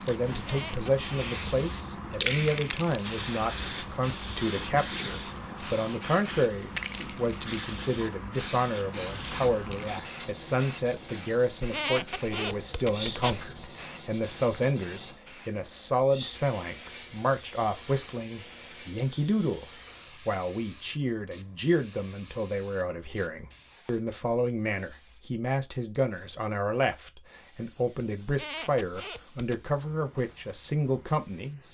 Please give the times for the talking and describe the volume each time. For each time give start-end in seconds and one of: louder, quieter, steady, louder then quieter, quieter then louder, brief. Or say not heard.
0.0-31.6 steady.